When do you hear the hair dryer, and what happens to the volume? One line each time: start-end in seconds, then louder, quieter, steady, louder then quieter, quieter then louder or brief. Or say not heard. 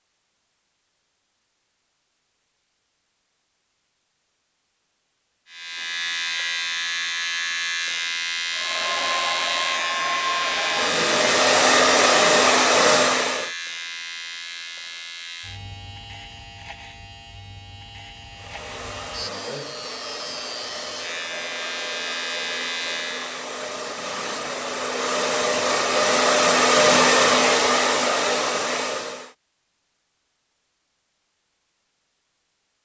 8.5-13.5 louder
18.3-29.4 louder.